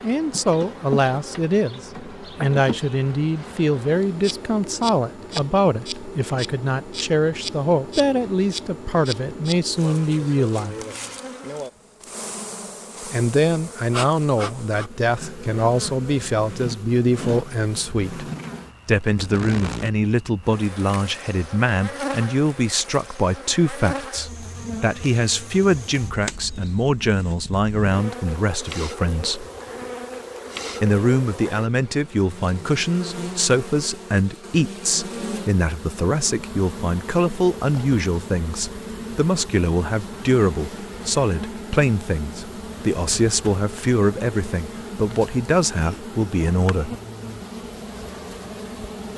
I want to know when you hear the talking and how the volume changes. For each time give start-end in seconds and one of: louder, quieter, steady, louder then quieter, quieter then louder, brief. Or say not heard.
0.0-10.8 steady
13.1-29.4 steady
30.8-46.9 steady.